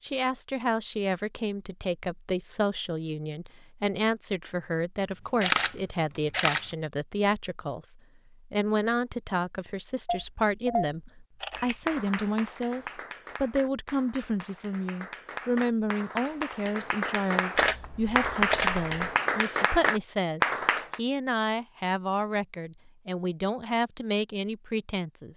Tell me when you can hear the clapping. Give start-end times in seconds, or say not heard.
11.5-21.0.